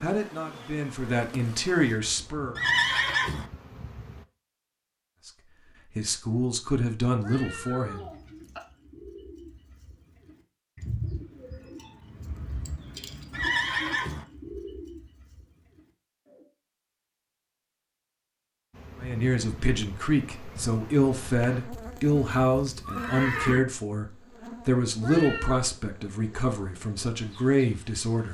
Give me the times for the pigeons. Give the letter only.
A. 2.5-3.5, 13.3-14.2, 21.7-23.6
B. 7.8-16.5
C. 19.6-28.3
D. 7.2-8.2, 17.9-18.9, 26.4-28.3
B.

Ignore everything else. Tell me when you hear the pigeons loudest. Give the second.
11 s.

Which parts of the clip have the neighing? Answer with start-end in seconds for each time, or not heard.
2.5-3.5, 13.3-14.2, 21.7-23.6.